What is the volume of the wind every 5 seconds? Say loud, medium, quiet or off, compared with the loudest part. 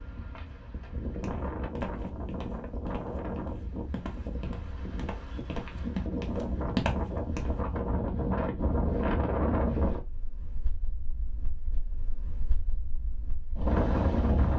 medium, loud, loud.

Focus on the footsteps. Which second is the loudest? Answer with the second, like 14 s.
7 s.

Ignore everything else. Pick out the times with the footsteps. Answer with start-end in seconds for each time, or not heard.
1.2-7.8.